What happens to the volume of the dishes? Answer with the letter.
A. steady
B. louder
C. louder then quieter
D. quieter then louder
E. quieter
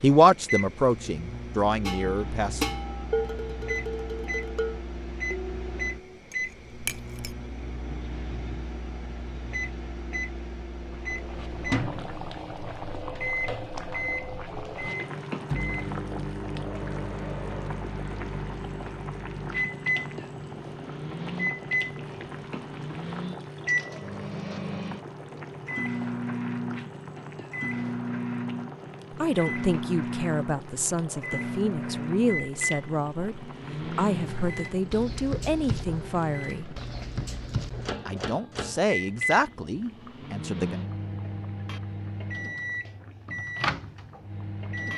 E.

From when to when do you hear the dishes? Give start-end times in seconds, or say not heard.
1.9-7.3.